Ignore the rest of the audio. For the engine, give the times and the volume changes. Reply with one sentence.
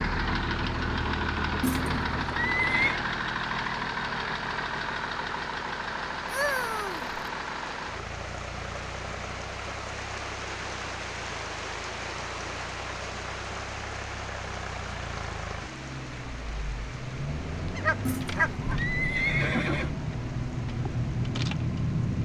The engine can be heard from 0.0 to 22.2 s, getting quieter then louder.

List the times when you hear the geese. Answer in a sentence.
You can hear the geese from 6.2 to 7.0 s and from 17.8 to 18.9 s.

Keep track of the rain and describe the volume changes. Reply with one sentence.
The loudness of the rain goes up, then down.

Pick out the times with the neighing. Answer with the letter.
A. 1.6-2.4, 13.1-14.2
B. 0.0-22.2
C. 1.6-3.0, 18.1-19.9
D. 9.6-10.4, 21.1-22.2
C.